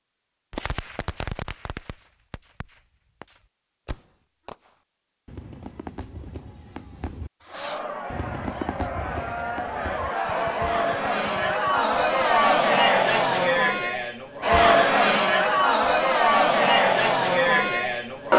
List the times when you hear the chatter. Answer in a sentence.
The chatter can be heard from 7.5 to 18.3 s.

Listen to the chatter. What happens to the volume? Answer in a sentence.
The volume of the chatter goes up.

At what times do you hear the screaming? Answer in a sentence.
You can't hear the screaming here.